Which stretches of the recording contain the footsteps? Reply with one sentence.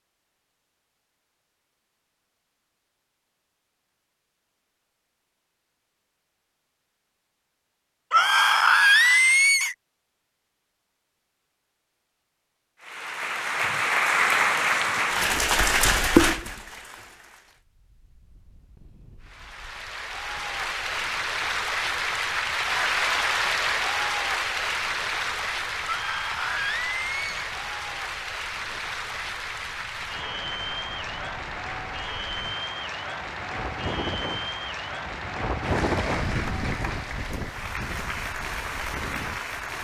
You can't hear the footsteps here.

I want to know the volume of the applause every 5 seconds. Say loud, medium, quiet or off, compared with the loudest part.
off, off, loud, loud, loud, medium, medium, medium.